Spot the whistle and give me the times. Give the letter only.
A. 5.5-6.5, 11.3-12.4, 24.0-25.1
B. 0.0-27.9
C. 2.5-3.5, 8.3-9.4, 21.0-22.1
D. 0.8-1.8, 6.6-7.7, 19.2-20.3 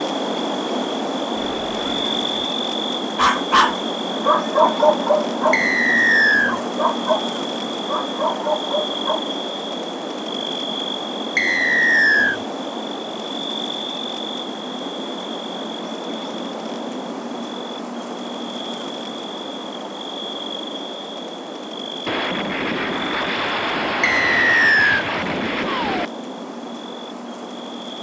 A.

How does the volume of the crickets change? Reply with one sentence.
The loudness of the crickets goes down.